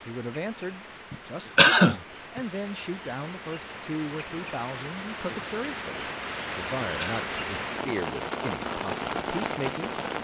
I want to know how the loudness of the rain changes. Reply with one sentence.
The loudness of the rain goes up.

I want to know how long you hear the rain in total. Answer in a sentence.
You can hear the rain for 10 seconds altogether.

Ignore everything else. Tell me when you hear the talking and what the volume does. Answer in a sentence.
You can hear the talking from 0.0 to 9.9 s, at a steady volume.